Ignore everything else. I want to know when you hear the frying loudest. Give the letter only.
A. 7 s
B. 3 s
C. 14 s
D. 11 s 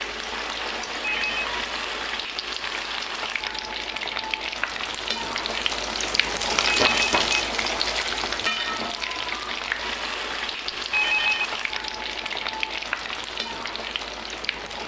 A.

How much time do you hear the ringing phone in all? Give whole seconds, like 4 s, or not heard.
2 s.